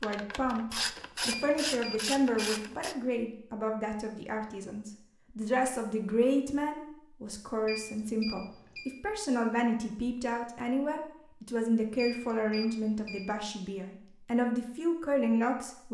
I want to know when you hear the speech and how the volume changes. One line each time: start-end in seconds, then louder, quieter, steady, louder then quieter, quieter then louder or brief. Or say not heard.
0.0-15.9 steady.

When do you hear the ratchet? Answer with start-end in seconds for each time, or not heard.
0.0-3.0.